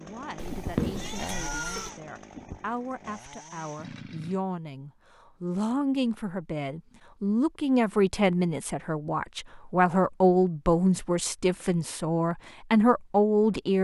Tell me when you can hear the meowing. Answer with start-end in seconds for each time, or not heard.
0.3-1.9.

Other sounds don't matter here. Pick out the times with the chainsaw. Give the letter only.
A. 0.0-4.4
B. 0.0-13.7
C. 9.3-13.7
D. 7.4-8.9
A.